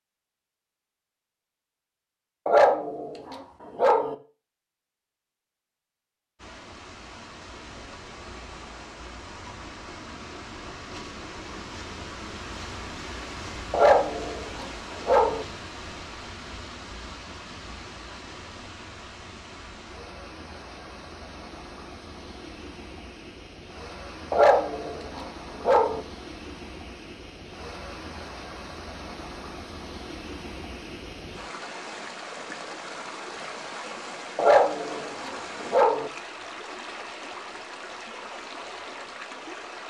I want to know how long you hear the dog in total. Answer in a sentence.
The dog can be heard for 7 seconds in total.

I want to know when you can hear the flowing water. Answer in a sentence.
You can hear the flowing water from 6.3 to 39.8 s.